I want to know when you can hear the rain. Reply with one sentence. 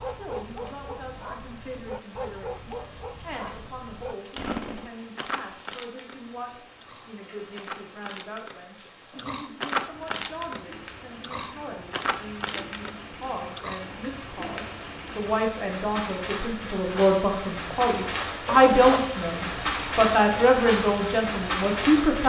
You can hear the rain from 0.0 to 22.2 s.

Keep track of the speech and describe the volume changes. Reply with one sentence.
The loudness of the speech goes up.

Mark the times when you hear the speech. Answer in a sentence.
The speech can be heard from 0.1 to 22.2 s.